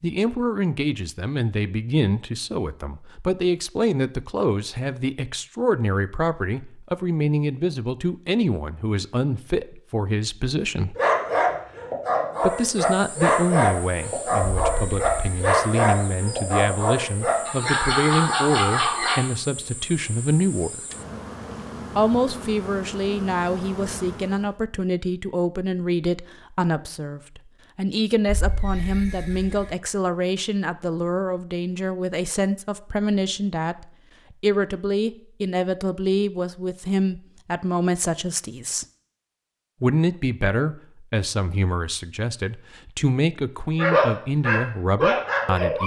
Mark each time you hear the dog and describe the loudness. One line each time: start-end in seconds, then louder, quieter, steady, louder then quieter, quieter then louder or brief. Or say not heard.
10.9-19.2 steady
43.8-45.8 brief.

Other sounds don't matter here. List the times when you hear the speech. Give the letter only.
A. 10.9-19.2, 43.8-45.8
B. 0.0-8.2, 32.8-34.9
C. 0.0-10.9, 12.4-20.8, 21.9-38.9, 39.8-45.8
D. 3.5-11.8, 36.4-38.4
C.